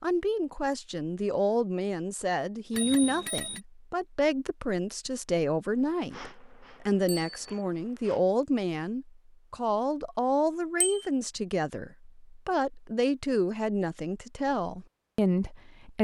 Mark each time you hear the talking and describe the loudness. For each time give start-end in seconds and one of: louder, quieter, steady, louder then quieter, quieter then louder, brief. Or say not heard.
0.0-16.0 steady.